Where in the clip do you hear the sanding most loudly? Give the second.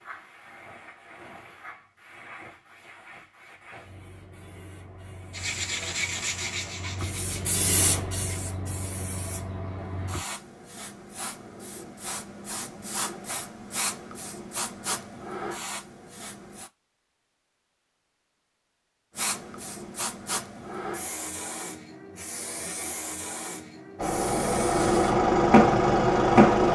6 s.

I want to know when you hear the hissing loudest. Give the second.
26 s.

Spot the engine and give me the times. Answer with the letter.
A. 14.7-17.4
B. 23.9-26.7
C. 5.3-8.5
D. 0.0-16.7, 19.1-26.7
B.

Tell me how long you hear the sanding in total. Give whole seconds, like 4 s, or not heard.
3 s.